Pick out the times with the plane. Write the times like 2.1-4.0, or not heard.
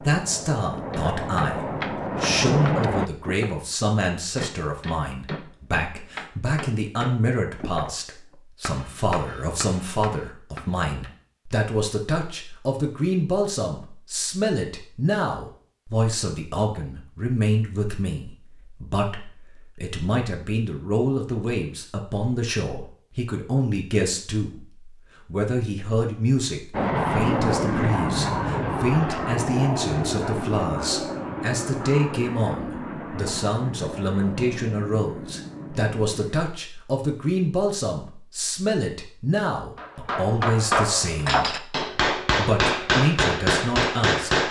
0.0-3.1, 26.7-36.4.